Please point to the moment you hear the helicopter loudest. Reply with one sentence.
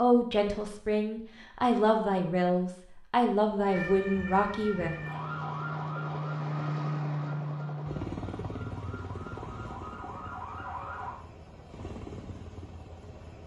The loudest moment of the helicopter is at 7 seconds.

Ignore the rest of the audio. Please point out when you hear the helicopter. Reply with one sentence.
The helicopter can be heard from 4.7 to 13.4 s.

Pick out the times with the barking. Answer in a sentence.
The barking can't be heard in this clip.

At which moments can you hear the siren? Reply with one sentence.
The siren can be heard from 3.6 to 11.2 s.